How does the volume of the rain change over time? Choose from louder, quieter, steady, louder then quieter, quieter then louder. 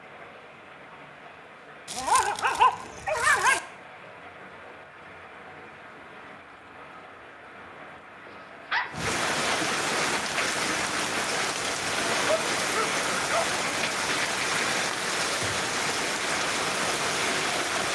louder.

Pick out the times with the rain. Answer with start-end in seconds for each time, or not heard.
0.0-17.8.